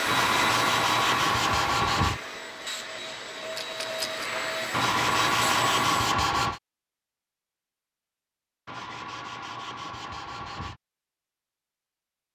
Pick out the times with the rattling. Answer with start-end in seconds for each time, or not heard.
3.5-4.2.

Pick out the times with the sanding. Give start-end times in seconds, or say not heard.
0.1-2.2, 4.7-6.6, 8.7-10.8.